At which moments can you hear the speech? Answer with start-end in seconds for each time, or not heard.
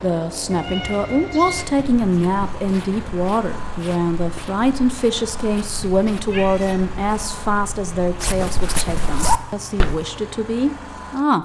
0.0-11.4.